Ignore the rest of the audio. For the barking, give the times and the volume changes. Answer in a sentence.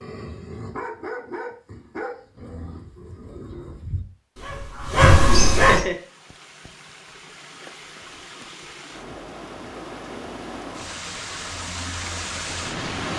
You can hear the barking from 0.0 to 5.8 s, getting quieter then louder.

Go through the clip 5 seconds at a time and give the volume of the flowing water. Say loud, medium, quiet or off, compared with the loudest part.
off, medium, loud.